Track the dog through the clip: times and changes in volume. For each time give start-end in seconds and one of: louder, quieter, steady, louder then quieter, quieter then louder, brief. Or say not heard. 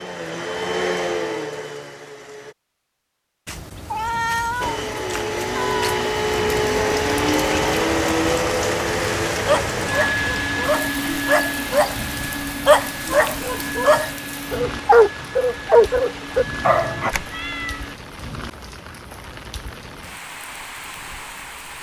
9.4-17.1 louder.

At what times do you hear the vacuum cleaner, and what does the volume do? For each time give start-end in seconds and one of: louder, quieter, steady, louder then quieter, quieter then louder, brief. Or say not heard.
0.0-2.5 brief
4.6-17.9 quieter.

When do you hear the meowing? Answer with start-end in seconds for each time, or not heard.
3.5-6.0, 17.1-17.9.